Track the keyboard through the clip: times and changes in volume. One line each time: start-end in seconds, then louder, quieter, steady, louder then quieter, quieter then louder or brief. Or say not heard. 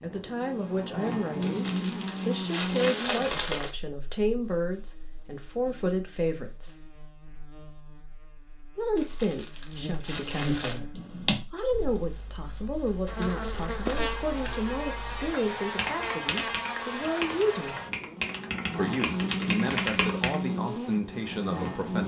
10.9-20.4 louder.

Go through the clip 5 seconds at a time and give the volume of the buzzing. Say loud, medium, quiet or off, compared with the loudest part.
loud, quiet, loud, loud, loud.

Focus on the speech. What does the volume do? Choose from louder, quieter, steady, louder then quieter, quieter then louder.
steady.